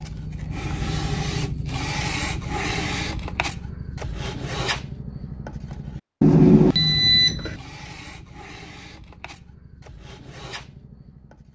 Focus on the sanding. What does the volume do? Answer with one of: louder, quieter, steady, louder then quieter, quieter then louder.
quieter.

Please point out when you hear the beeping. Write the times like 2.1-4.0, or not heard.
6.2-7.5.